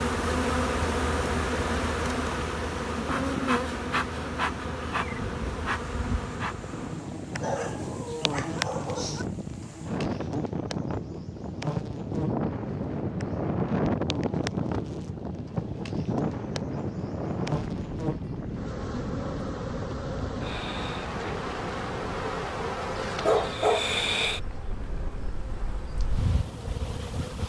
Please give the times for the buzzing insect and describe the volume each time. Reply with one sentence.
The buzzing insect can be heard from 0.0 to 27.4 s, getting quieter then louder.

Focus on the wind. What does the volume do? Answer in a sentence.
The loudness of the wind goes up, then down.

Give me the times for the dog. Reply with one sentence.
The dog can be heard from 7.4 to 9.2 s and from 23.2 to 23.9 s.